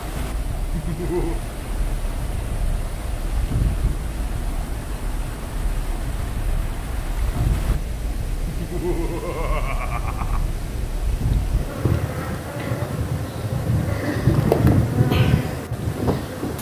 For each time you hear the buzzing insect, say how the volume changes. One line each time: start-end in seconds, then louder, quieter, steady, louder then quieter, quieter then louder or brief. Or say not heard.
0.0-16.5 louder.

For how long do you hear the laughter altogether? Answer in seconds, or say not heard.
3 s.